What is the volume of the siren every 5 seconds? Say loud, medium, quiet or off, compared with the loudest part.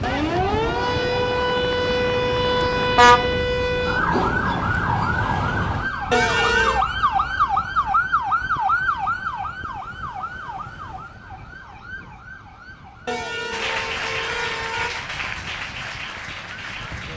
loud, loud, quiet, quiet.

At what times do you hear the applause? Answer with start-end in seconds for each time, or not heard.
13.5-17.1.